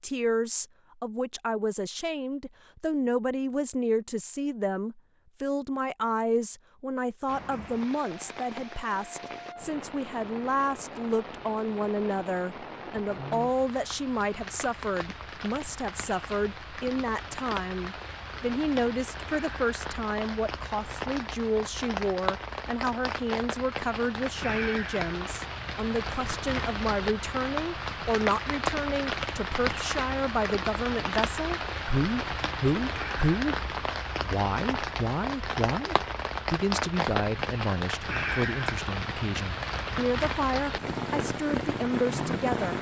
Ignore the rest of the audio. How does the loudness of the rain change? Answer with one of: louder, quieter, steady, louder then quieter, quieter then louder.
louder.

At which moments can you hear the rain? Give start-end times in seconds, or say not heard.
7.2-42.7.